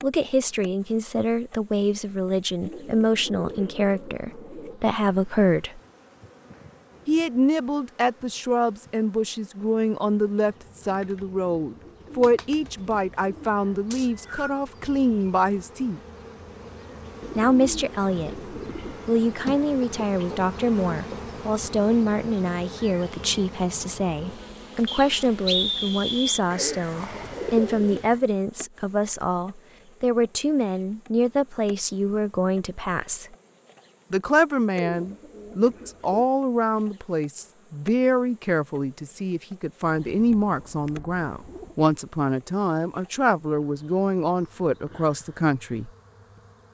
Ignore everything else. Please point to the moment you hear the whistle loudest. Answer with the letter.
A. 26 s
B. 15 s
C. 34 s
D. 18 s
A.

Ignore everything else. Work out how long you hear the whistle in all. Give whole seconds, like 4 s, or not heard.
2 s.